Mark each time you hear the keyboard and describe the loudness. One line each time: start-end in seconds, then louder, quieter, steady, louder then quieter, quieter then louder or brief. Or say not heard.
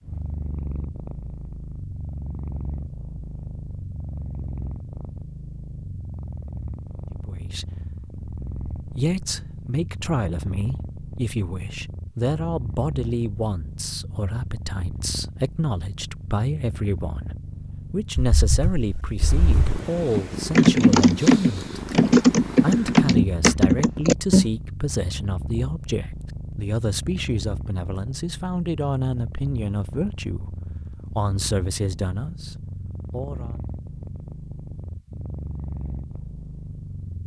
18.1-24.4 louder.